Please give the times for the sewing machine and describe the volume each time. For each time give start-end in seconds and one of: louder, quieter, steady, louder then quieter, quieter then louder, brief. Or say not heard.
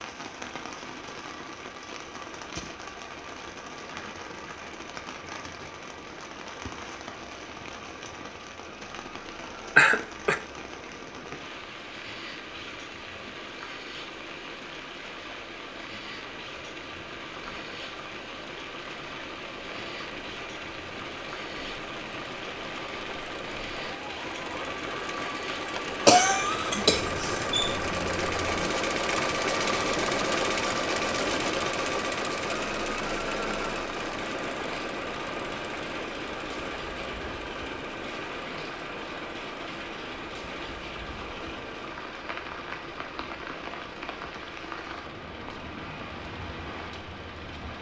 0.0-47.7 louder then quieter.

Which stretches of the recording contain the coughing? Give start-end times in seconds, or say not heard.
9.8-10.3, 26.1-27.8.